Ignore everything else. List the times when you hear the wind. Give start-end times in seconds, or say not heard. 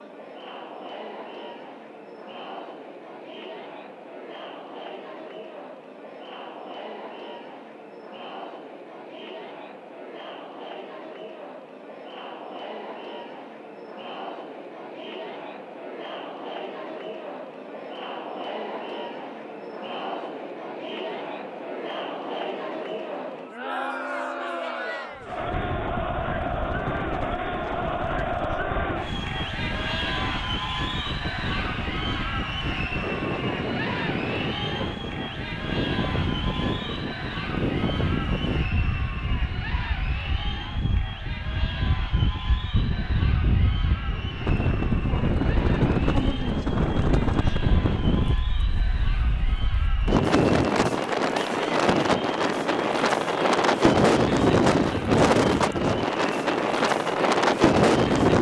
25.1-58.3.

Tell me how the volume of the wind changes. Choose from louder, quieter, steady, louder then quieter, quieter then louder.
louder.